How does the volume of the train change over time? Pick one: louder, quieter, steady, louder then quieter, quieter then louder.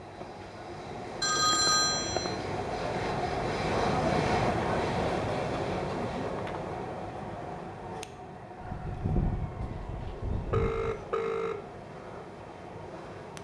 louder then quieter.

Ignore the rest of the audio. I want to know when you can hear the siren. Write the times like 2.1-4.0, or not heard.
8.6-11.1.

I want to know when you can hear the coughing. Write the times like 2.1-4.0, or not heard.
not heard.